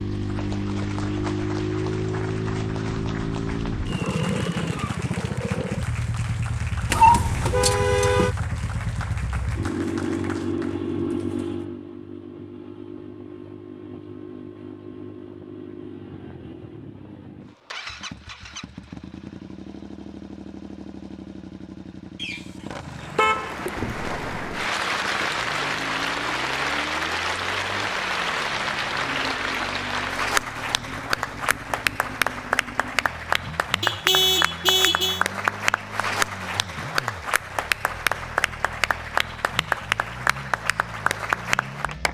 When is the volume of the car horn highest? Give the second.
7 s.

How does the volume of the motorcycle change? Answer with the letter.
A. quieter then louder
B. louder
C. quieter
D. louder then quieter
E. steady
C.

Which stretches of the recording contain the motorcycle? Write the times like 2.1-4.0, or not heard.
0.0-42.0.